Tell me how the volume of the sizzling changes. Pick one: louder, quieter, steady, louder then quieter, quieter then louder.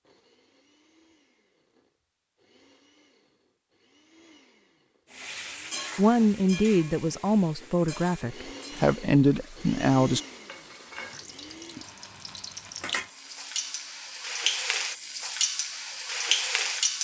quieter then louder.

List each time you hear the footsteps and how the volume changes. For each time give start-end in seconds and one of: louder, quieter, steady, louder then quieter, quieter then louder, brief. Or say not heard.
not heard.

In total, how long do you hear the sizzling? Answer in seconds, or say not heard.
12 s.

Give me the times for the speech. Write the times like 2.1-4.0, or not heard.
6.0-10.2.